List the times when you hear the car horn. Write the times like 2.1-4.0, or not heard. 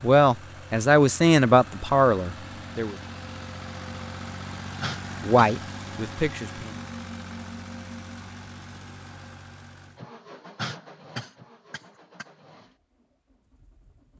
not heard.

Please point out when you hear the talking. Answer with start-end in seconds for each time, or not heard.
0.0-3.0, 5.2-6.8.